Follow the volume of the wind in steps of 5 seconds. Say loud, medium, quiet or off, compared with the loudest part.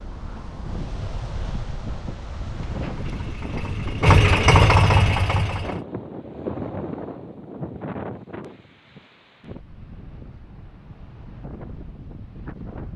loud, loud, medium.